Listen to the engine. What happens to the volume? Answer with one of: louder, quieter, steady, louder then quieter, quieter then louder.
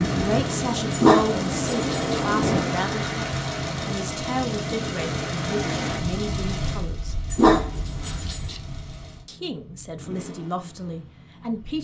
quieter.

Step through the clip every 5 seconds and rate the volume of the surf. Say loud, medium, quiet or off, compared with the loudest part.
loud, medium, off.